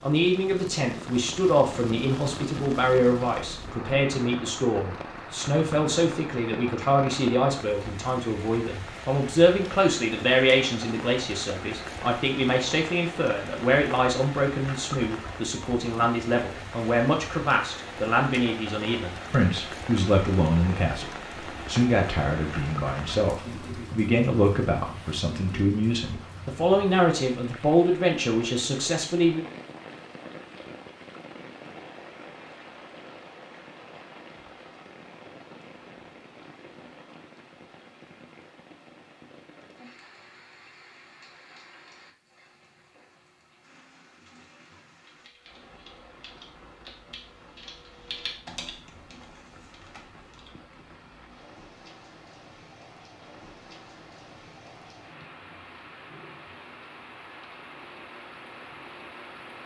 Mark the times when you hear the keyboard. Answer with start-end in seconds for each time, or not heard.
45.0-50.6.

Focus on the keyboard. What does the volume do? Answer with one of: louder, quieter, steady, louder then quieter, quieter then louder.
louder then quieter.